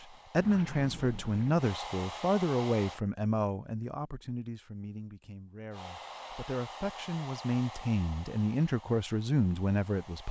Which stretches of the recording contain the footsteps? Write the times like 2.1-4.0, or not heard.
not heard.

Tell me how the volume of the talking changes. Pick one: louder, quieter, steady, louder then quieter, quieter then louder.
quieter then louder.